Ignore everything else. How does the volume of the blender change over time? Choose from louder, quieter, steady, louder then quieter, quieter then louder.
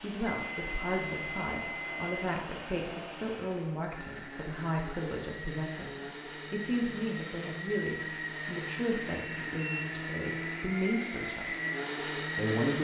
louder.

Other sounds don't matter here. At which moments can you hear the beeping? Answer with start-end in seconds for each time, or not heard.
0.2-2.2, 9.2-10.0.